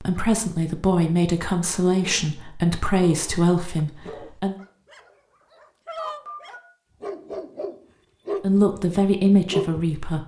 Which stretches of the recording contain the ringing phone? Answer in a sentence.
The ringing phone can be heard from 6.0 to 6.7 s.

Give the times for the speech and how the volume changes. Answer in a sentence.
You can hear the speech from 0.0 to 4.5 s, at a steady volume; and briefly from 8.4 to 10.2 s.